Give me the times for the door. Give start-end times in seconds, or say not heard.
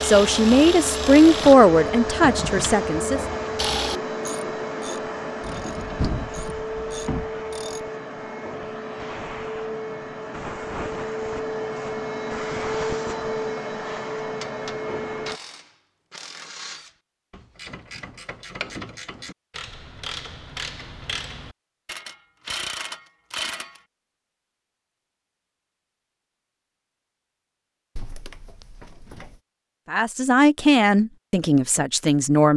5.4-7.3, 27.9-29.4.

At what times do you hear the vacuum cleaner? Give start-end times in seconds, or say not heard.
0.0-15.4.